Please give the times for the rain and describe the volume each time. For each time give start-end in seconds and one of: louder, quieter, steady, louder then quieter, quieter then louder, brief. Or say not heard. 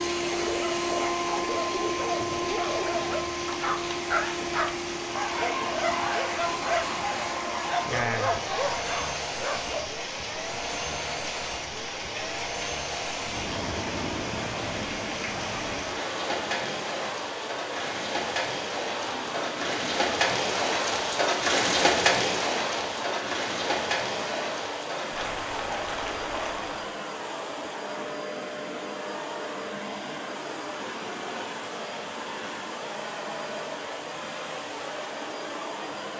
0.0-26.9 louder.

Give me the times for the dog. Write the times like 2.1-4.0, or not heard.
0.2-10.1.